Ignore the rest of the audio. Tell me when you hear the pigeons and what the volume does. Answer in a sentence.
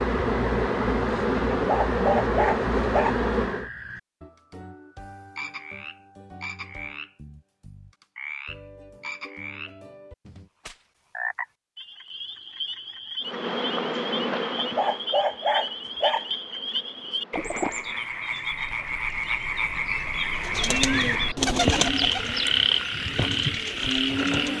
The pigeons can be heard from 20.4 to 24.5 s, getting quieter.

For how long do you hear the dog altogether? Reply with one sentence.
You can hear the dog for 3 seconds altogether.